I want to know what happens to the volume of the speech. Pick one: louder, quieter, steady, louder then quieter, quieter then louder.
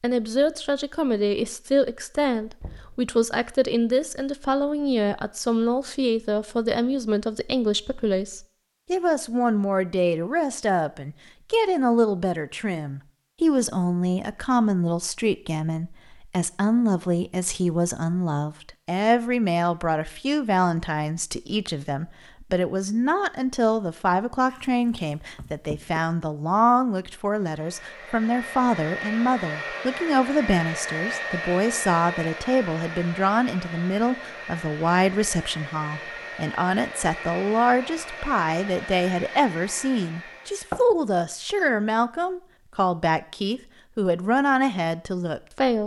steady.